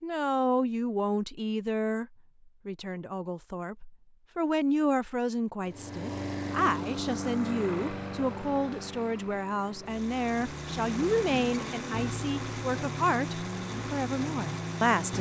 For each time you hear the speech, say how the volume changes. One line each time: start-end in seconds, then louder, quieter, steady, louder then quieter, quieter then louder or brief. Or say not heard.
0.0-15.1 steady.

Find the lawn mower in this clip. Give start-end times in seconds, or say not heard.
5.6-15.1.